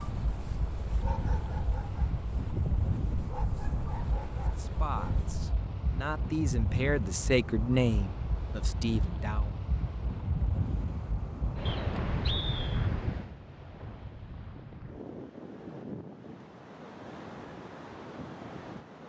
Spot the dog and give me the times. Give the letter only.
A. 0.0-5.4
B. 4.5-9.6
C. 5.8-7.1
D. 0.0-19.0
A.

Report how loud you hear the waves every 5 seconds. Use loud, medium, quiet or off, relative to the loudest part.
loud, loud, loud, medium.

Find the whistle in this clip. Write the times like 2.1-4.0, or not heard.
11.7-12.9.